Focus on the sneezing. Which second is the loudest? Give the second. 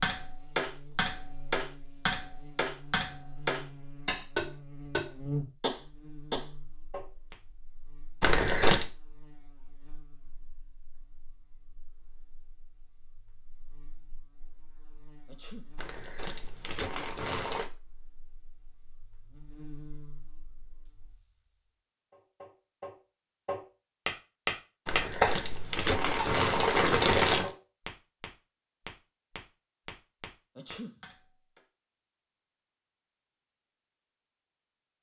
31 s.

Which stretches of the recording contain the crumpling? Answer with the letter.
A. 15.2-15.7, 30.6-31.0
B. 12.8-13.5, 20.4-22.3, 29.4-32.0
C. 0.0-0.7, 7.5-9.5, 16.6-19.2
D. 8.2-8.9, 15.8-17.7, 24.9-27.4
D.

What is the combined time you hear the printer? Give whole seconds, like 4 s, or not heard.
not heard.